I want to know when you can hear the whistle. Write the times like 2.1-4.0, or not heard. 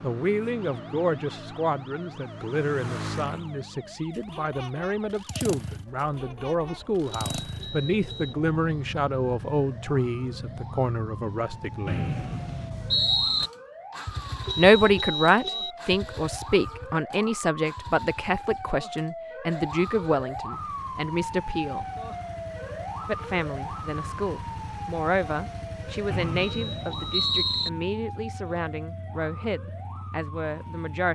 11.8-13.5, 26.1-27.7.